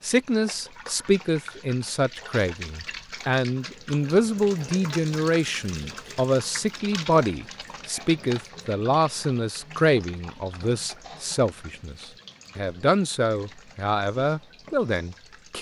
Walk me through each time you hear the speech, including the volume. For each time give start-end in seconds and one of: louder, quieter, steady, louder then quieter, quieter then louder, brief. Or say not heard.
0.0-15.5 steady.